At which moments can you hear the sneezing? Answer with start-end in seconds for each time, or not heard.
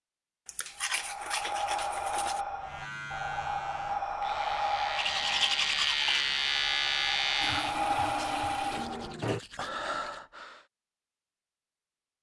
not heard.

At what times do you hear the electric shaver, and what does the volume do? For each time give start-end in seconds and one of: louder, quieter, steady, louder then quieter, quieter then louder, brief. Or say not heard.
2.6-7.8 louder.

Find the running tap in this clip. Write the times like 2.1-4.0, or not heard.
7.4-9.4.